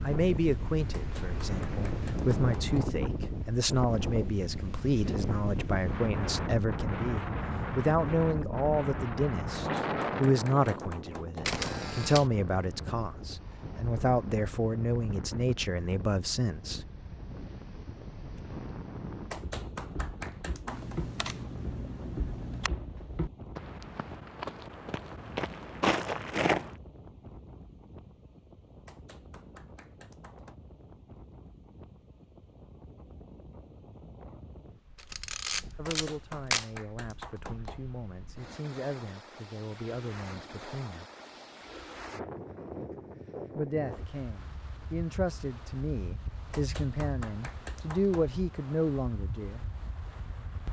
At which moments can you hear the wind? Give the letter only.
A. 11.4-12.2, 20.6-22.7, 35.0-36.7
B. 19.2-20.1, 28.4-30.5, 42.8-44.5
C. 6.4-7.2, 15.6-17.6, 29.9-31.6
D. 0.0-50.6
D.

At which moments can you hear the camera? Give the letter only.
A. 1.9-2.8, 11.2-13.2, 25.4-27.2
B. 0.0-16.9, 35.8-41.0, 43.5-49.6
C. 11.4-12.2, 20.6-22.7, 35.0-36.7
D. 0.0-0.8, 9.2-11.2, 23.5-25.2
C.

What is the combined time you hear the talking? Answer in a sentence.
You can hear the talking for 28 seconds altogether.